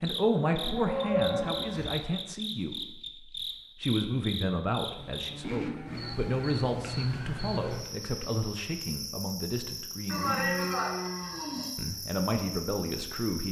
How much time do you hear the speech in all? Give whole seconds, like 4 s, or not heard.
12 s.